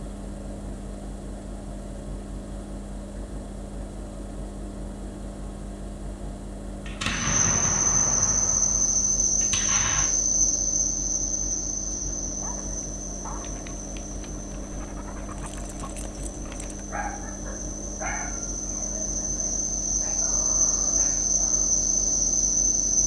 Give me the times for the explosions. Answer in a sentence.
You can hear the explosions from 6.8 to 10.1 s.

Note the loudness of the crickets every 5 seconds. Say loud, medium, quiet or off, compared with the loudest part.
off, loud, medium, medium, loud.